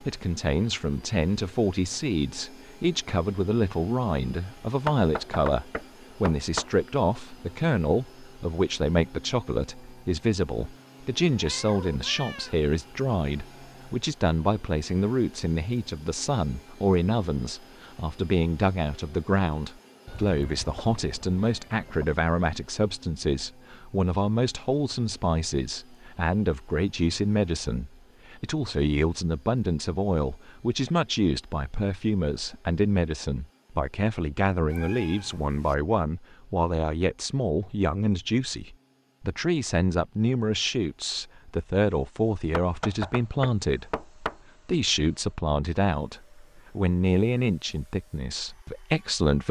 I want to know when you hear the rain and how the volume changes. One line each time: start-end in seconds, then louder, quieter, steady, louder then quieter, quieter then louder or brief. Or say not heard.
not heard.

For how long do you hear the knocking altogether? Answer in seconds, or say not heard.
4 s.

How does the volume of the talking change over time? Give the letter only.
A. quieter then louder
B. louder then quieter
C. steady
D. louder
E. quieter
C.